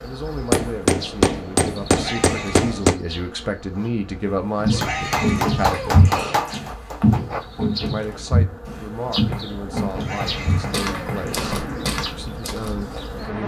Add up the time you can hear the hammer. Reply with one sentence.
The hammer can be heard for 7 seconds in total.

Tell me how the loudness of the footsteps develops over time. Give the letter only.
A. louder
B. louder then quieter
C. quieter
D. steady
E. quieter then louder
C.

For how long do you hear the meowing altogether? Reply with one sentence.
You can hear the meowing for 5 seconds altogether.